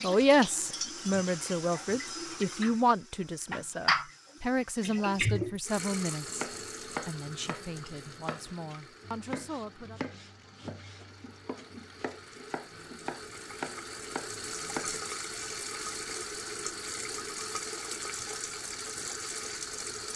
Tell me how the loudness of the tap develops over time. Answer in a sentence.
The volume of the tap goes down, then up.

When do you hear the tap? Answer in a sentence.
You can hear the tap from 0.0 to 20.1 s.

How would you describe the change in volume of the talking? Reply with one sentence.
The volume of the talking goes down.